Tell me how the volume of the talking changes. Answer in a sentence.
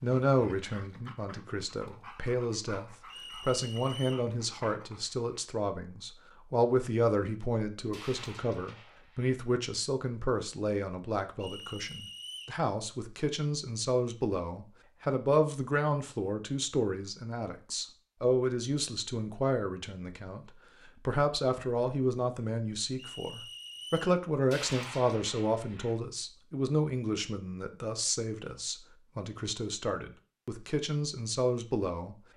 The volume of the talking stays about the same.